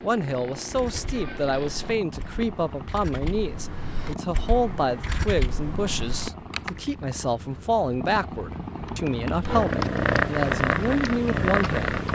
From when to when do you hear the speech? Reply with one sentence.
You can hear the speech from 0.0 to 12.0 s.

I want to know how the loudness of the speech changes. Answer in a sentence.
The volume of the speech stays about the same.